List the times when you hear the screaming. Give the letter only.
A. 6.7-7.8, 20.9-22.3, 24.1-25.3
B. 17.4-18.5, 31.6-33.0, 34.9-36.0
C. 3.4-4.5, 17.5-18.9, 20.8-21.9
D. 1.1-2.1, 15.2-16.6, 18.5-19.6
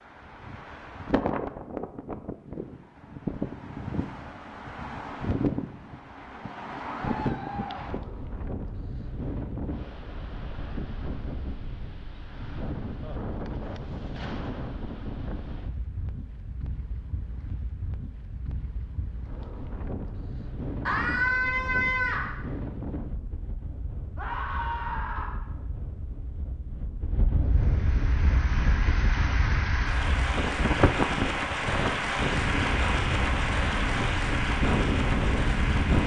A.